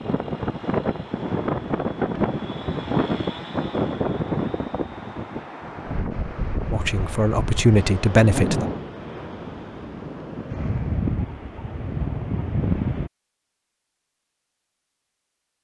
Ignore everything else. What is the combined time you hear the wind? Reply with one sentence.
You can hear the wind for 13 seconds altogether.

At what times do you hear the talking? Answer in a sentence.
You can hear the talking from 6.7 to 8.7 s.